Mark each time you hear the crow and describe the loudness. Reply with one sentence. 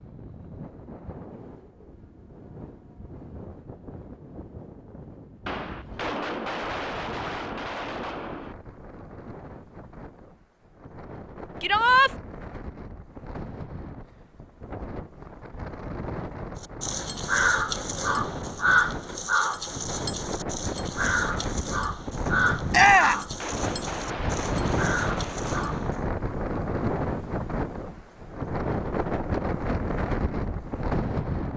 You can hear the crow from 16.6 to 26.0 s, getting quieter.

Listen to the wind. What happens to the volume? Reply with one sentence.
The loudness of the wind goes up.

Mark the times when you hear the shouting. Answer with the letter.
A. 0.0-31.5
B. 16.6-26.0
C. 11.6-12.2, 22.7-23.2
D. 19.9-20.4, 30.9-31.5
C.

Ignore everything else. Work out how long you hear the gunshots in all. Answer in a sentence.
The gunshots can be heard for 6 seconds in total.